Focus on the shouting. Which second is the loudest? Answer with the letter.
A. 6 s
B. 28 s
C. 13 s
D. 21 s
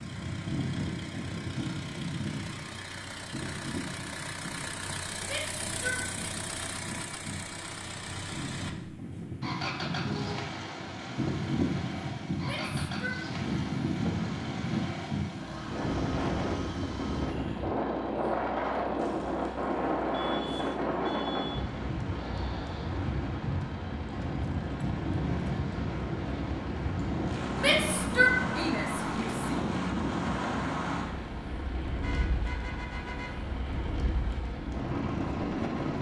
B.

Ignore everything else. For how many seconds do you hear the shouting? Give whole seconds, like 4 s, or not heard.
4 s.